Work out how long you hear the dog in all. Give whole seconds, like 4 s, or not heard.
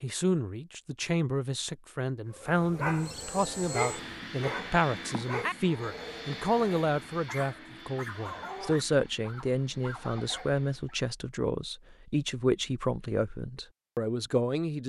9 s.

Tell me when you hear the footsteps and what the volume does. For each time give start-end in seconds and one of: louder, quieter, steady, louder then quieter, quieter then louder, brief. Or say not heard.
not heard.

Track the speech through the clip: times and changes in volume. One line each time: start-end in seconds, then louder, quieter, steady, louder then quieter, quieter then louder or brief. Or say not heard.
0.0-14.8 steady.